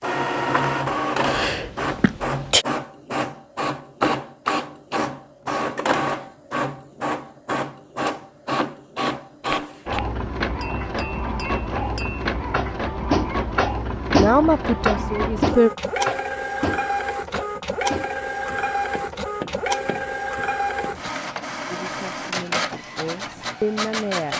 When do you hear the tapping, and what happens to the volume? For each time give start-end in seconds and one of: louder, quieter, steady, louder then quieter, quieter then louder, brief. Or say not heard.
9.5-21.0 louder then quieter.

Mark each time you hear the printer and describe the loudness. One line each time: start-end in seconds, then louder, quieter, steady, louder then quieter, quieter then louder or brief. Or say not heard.
0.0-24.3 steady.